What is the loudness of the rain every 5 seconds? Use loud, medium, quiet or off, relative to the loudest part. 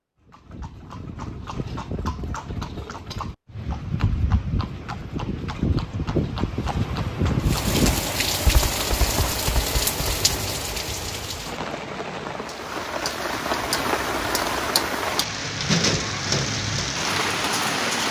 off, loud, loud, loud.